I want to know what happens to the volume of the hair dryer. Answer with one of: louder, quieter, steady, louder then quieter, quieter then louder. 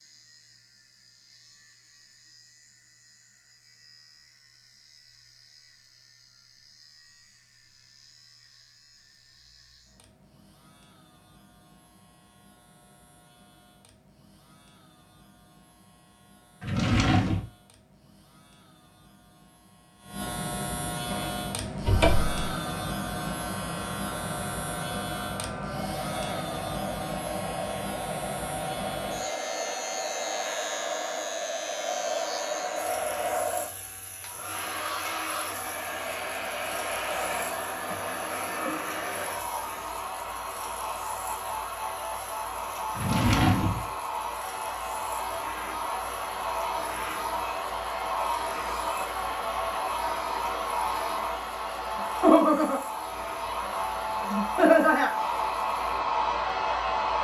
louder.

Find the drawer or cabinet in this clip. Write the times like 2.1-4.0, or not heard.
16.6-17.4, 21.8-22.4, 43.0-43.9.